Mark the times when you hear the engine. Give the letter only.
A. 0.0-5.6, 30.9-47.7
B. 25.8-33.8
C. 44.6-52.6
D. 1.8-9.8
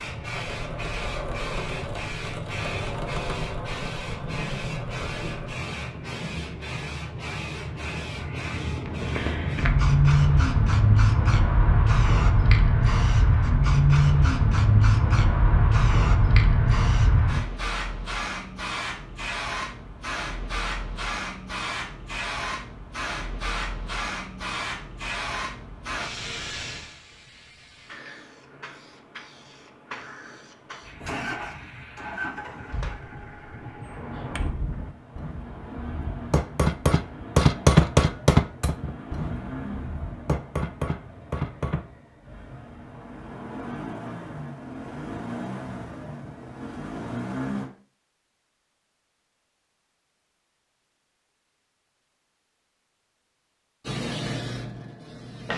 A.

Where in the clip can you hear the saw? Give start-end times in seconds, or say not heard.
not heard.